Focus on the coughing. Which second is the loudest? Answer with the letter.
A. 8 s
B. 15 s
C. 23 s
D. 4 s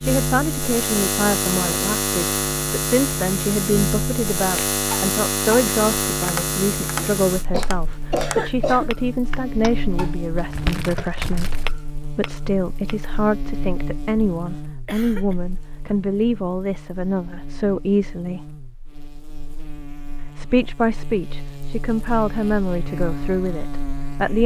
A.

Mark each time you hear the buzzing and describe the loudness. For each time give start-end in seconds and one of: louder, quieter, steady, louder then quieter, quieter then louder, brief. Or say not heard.
0.0-24.4 quieter then louder.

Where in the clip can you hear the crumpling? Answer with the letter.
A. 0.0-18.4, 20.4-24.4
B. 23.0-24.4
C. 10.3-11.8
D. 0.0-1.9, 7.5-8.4
C.